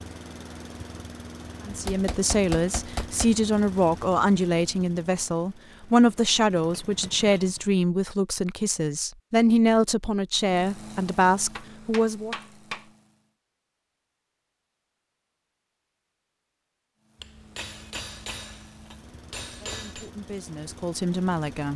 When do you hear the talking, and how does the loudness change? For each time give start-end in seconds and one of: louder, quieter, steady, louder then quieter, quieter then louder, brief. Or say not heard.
1.6-12.3 steady
19.6-21.7 brief.